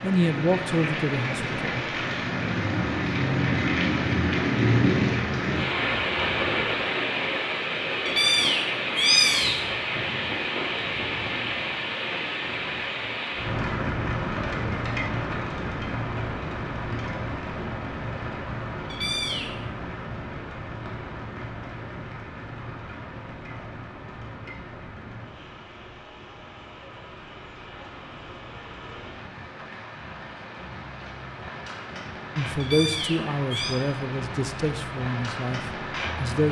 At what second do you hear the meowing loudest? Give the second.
9 s.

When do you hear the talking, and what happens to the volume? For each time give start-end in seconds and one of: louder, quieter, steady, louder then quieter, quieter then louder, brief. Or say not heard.
0.0-1.9 brief
32.4-36.4 quieter.